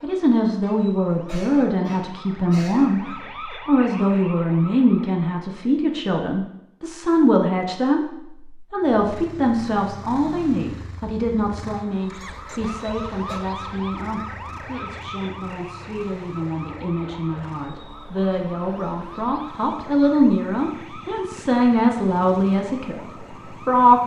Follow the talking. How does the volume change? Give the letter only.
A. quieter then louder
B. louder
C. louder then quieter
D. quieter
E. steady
A.